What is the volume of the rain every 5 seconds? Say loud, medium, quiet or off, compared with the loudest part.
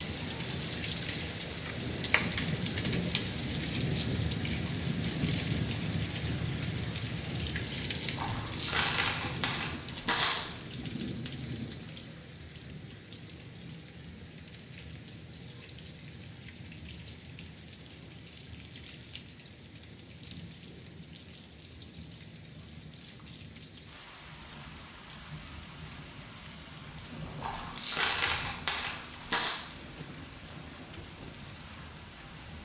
loud, loud, medium, quiet, quiet, quiet, quiet.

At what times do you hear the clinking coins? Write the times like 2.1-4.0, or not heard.
8.2-10.4, 27.4-29.6.